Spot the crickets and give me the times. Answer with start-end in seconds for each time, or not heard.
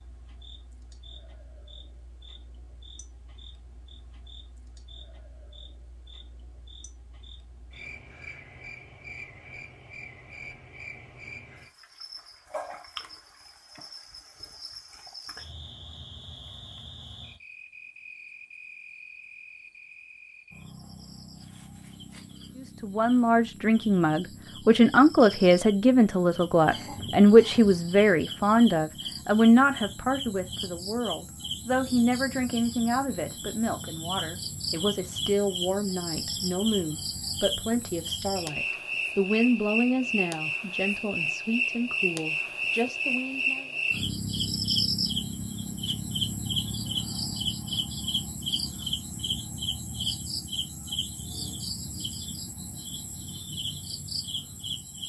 0.0-55.0.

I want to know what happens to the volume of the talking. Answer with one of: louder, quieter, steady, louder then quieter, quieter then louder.
quieter.